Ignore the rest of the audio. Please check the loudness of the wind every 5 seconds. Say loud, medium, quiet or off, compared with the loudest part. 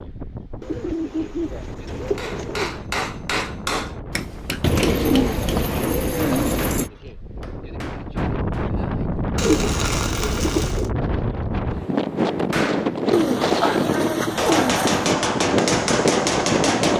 quiet, medium, loud, loud.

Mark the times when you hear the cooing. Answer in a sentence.
The cooing can be heard from 0.6 to 2.7 s, from 4.6 to 6.9 s, from 9.3 to 10.9 s and from 13.1 to 15.1 s.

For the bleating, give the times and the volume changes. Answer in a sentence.
The bleating can't be heard in this clip.